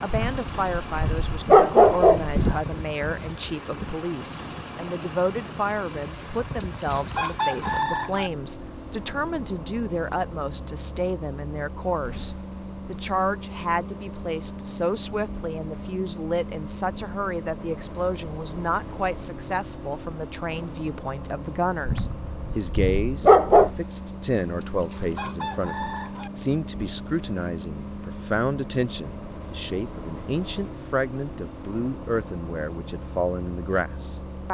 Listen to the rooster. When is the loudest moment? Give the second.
7 s.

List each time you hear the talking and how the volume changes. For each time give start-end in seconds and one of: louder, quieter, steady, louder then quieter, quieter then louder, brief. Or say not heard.
0.0-34.4 steady.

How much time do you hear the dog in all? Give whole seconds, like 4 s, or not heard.
4 s.